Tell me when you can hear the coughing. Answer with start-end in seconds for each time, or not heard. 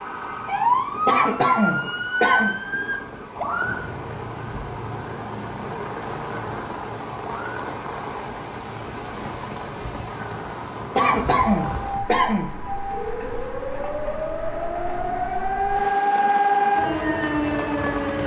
1.1-2.5, 10.9-12.5.